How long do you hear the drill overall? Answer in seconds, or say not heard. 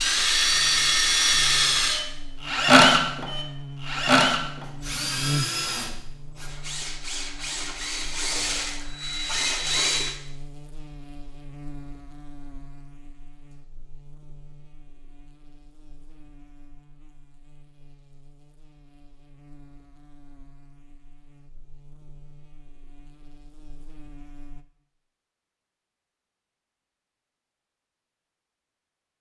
10 s.